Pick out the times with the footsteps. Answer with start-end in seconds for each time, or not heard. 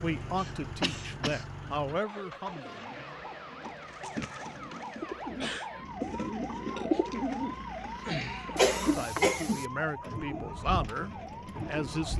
not heard.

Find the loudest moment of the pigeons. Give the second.
7 s.